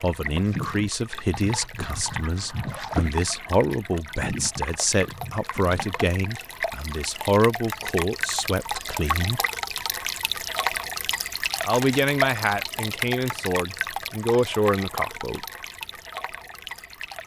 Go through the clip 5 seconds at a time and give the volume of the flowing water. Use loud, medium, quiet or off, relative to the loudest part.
medium, loud, loud, medium.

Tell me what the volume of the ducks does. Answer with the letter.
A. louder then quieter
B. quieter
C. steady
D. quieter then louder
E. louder
A.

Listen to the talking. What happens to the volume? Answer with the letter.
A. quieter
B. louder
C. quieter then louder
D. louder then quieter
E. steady
E.